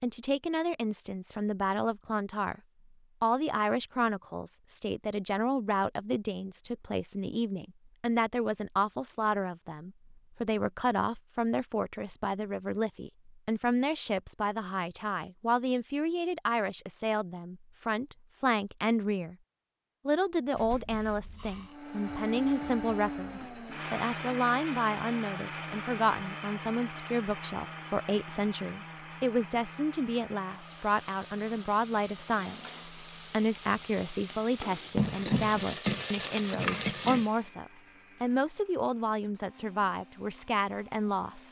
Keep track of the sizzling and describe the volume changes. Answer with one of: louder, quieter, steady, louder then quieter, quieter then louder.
louder.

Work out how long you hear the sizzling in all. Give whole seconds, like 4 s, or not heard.
7 s.